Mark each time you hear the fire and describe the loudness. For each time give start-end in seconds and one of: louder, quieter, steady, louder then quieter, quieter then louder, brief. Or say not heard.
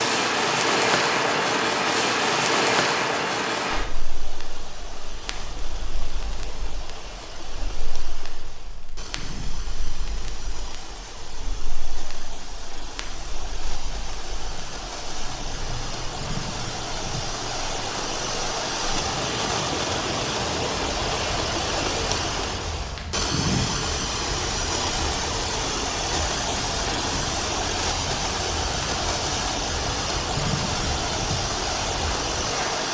0.0-32.8 quieter then louder.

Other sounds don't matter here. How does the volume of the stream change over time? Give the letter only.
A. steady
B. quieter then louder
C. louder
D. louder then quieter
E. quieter
C.